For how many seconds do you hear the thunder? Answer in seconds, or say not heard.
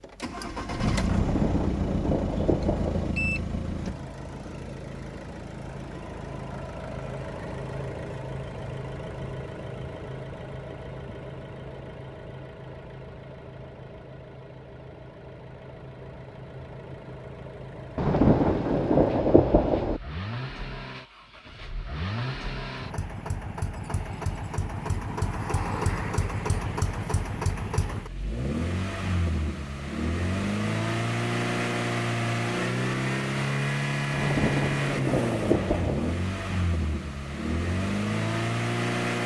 6 s.